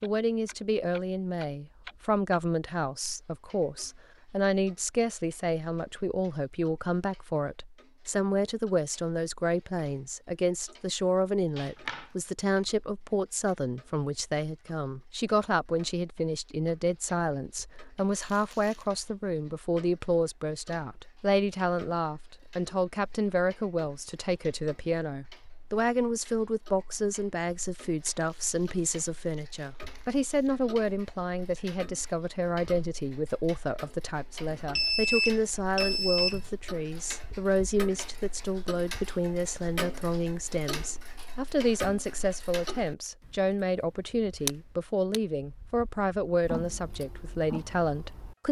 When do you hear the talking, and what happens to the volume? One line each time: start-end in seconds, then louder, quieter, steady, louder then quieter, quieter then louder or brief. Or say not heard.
0.0-48.4 steady.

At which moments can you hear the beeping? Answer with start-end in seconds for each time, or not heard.
11.6-12.1, 34.5-36.5.